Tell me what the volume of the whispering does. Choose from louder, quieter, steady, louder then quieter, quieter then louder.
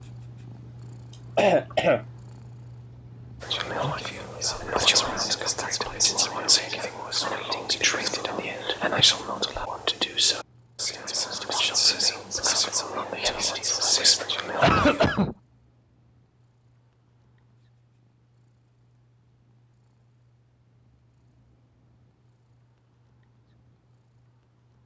steady.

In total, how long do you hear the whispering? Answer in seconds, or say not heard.
12 s.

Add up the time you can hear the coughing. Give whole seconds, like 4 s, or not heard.
2 s.